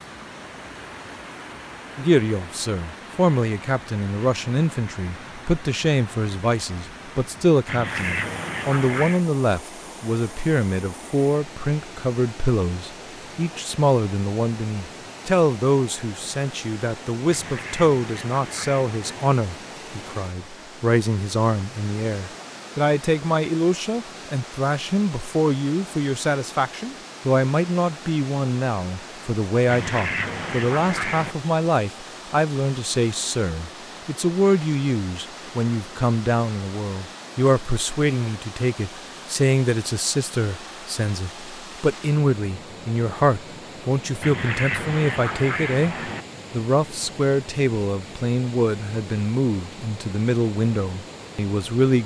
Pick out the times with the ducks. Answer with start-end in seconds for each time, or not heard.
7.7-9.2, 17.2-19.3, 29.6-31.4, 44.2-46.2.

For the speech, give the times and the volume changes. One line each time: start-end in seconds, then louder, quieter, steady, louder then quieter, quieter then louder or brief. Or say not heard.
1.9-52.0 steady.